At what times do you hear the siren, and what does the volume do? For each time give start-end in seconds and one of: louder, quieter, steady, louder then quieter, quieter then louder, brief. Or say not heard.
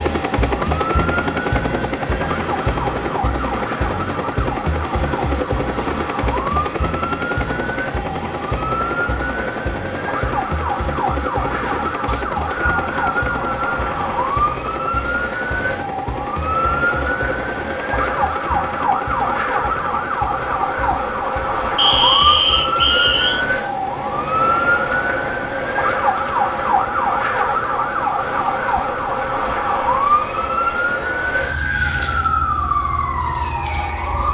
0.1-34.2 louder.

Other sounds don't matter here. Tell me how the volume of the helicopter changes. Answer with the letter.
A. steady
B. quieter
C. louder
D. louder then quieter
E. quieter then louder
B.